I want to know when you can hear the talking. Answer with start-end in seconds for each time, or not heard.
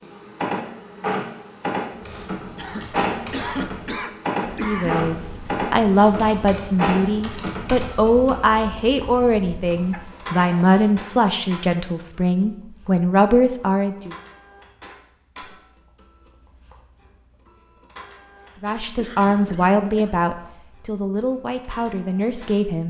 4.5-14.2, 18.6-22.8.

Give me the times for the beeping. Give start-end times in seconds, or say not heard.
not heard.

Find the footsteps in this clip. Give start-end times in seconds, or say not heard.
not heard.